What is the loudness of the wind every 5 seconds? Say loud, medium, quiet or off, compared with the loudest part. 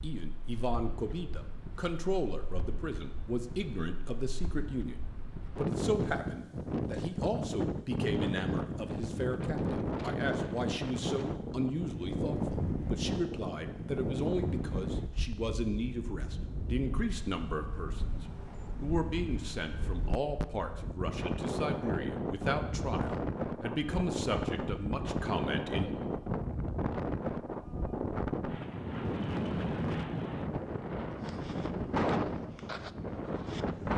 quiet, loud, loud, medium, loud, loud, loud.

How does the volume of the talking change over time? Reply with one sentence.
The loudness of the talking stays about the same.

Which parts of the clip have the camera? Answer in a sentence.
The camera can't be heard in this clip.